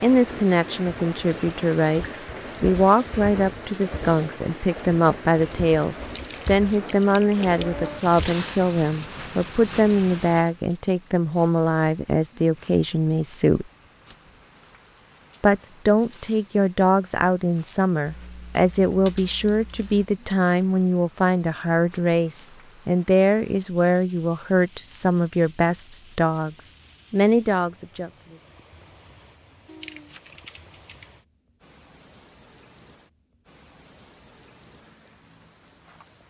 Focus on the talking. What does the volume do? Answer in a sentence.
The loudness of the talking stays about the same.